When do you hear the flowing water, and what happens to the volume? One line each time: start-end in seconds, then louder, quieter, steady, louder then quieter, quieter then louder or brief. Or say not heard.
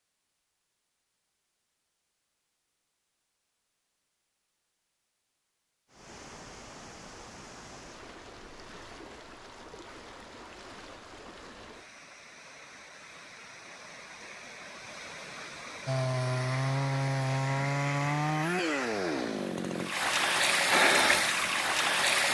5.9-22.2 louder.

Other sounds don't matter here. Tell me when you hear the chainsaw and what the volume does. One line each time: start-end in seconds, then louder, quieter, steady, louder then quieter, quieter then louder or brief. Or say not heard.
15.8-22.2 quieter.